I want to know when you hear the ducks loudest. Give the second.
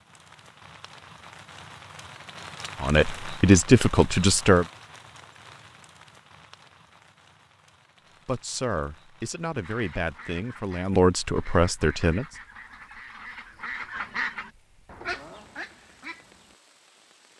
14 s.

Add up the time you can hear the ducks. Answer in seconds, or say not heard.
7 s.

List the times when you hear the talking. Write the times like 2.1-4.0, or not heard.
2.8-4.7, 8.2-12.2.